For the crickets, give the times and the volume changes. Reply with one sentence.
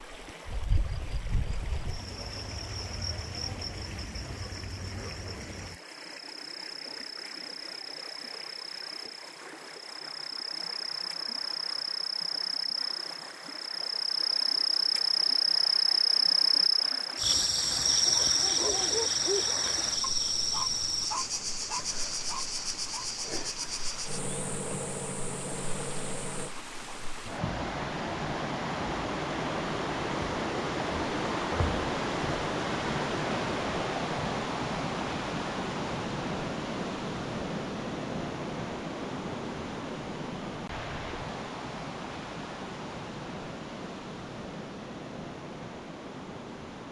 The crickets can be heard from 0.1 to 26.6 s, getting louder then quieter.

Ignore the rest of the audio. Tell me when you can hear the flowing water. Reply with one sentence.
The flowing water can be heard from 0.0 to 46.8 s.